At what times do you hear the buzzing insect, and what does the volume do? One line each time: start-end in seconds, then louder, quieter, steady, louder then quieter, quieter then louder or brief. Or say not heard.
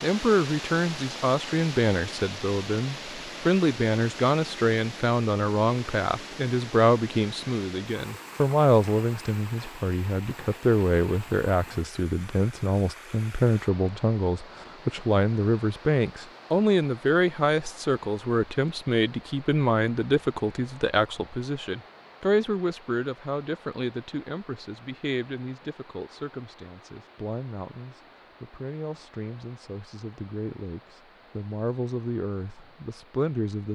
not heard.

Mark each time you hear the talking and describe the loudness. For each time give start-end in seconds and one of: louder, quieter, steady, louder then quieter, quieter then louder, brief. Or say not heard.
0.0-33.6 quieter.